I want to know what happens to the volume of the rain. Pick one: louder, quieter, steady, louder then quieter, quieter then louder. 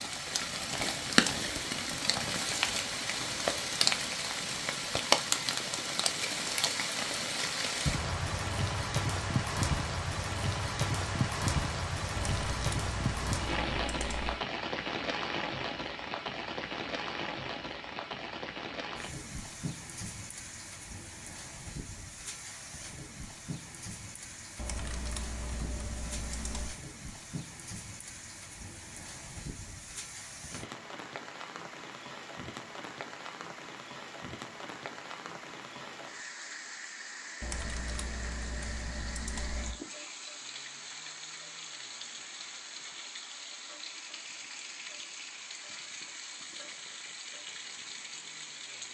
quieter.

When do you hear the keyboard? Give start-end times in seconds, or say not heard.
12.2-14.4, 24.6-26.8, 37.4-39.8.